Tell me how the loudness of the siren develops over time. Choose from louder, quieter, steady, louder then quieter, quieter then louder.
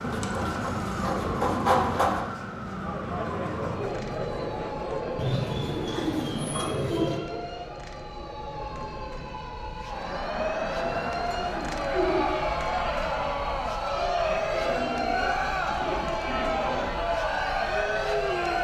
quieter then louder.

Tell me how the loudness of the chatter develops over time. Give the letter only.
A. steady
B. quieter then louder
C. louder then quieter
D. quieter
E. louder
B.